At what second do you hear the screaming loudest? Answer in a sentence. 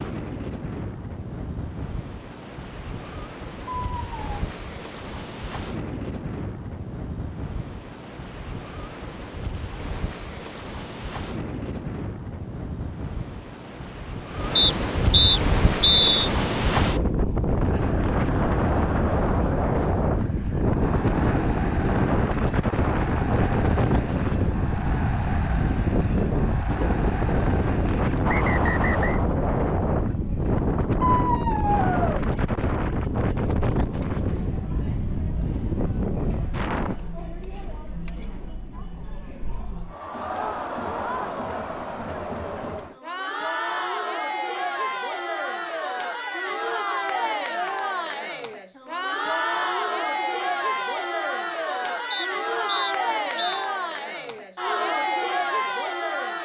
The loudest moment of the screaming is at 31 seconds.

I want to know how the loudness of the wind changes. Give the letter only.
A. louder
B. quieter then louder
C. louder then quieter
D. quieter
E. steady
A.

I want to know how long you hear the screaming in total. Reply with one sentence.
The screaming can be heard for 2 seconds in total.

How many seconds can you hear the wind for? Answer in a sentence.
You can hear the wind for 37 seconds altogether.